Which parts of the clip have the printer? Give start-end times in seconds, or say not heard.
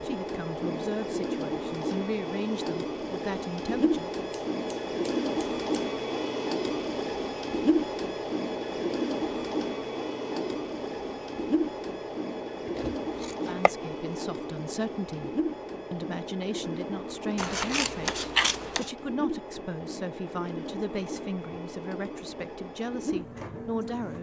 0.0-24.1.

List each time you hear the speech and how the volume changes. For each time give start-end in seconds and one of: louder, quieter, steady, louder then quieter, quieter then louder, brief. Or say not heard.
0.0-4.2 quieter then louder
13.3-24.1 steady.